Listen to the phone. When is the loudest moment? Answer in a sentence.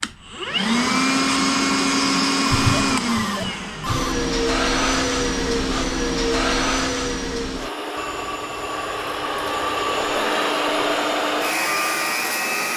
The volume of the phone peaks at 3 seconds.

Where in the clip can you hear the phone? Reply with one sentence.
You can hear the phone from 2.5 to 4.2 s and from 8.0 to 10.3 s.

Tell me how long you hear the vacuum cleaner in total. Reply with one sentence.
You can hear the vacuum cleaner for 13 seconds altogether.